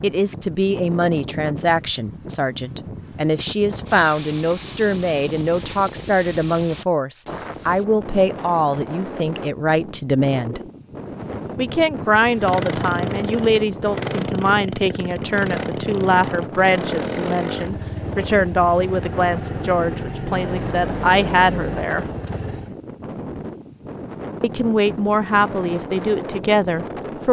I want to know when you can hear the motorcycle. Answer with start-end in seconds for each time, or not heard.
11.1-22.8.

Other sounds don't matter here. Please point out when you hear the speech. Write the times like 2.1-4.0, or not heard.
0.0-10.6, 11.6-22.1, 24.4-27.2.